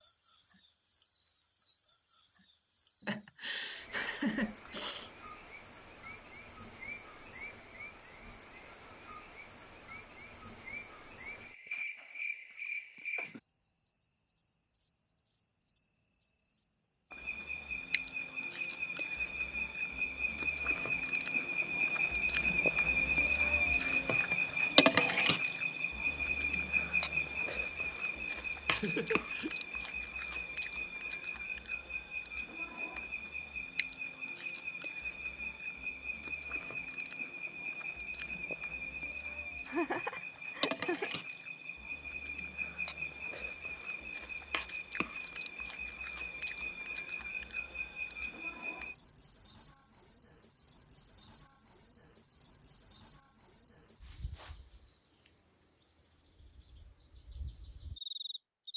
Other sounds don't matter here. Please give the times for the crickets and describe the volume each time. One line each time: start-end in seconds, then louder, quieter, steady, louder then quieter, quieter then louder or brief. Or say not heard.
0.0-58.7 louder then quieter.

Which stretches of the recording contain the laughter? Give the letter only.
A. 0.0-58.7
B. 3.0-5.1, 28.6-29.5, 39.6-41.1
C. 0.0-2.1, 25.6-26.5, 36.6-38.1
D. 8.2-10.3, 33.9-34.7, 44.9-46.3
B.